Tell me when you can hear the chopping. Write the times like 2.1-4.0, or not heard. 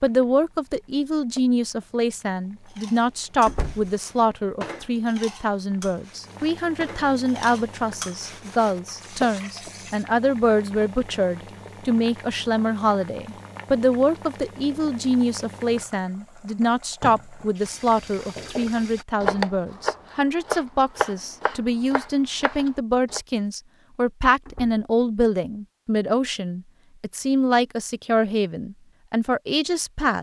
18.4-23.2.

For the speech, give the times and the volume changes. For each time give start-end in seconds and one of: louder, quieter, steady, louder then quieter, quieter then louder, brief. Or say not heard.
0.0-30.1 steady.